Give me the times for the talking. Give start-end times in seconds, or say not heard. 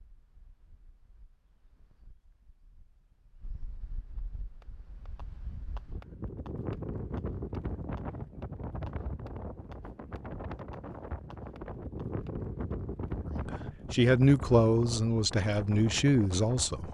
13.3-16.8.